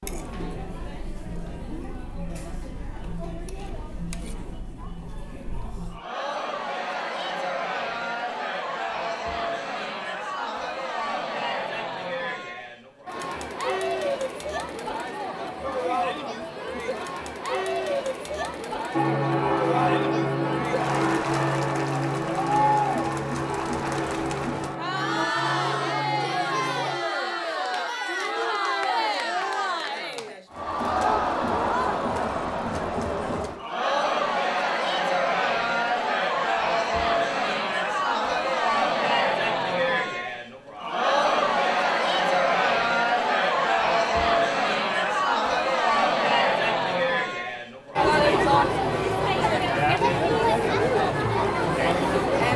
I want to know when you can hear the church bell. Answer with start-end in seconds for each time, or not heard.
18.9-27.0.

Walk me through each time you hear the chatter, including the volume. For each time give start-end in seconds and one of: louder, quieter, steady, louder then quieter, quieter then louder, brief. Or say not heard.
0.0-52.5 louder.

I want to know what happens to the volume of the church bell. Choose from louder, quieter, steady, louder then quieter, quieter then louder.
quieter.